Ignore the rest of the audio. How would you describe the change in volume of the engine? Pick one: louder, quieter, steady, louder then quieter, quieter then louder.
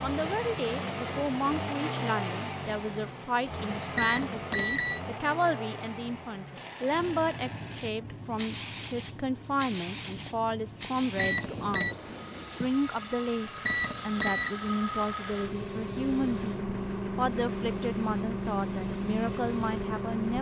quieter then louder.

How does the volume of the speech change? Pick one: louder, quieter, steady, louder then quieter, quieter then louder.
steady.